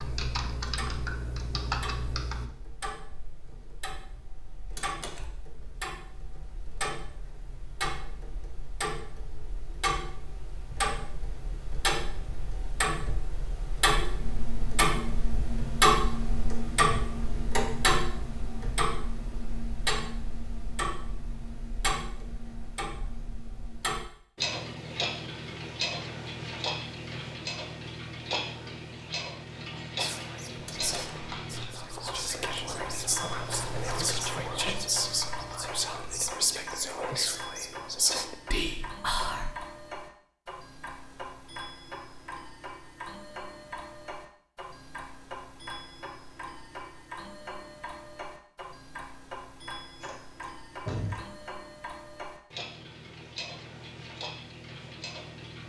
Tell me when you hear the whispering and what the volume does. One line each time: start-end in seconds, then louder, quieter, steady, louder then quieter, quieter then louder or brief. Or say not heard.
29.9-39.5 louder.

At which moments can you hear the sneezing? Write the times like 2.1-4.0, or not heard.
not heard.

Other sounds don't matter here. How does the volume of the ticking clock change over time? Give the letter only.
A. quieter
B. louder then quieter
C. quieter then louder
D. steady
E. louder
B.